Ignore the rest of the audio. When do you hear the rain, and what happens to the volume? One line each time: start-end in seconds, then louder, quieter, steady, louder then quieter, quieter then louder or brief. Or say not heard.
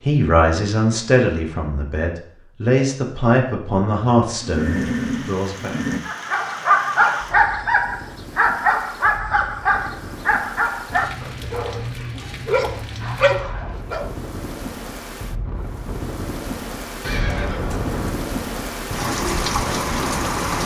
4.5-20.6 louder.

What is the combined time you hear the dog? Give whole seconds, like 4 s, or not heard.
8 s.